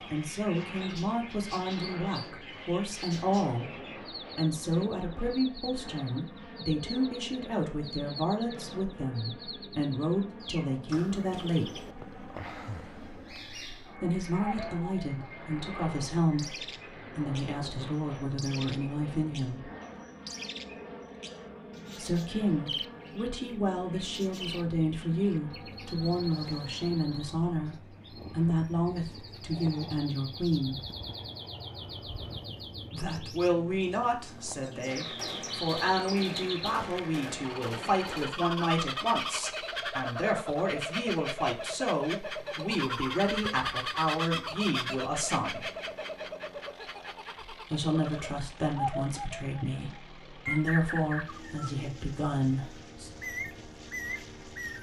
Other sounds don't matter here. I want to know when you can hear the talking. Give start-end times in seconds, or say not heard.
0.1-11.8, 13.9-19.7, 21.9-30.8, 32.9-45.6, 47.5-53.1.